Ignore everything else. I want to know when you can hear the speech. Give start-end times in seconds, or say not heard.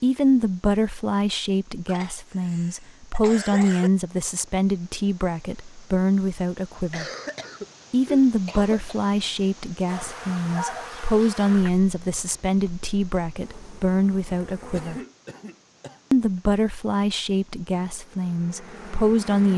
0.0-7.0, 7.9-15.0, 16.1-19.5.